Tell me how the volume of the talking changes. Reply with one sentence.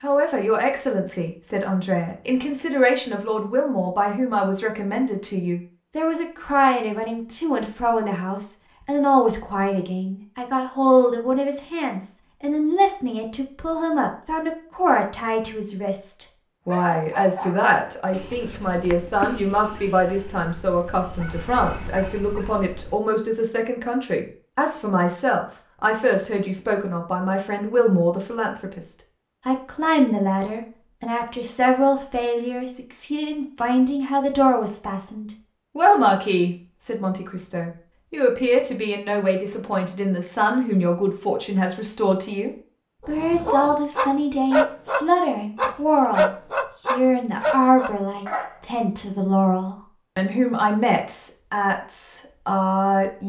The loudness of the talking stays about the same.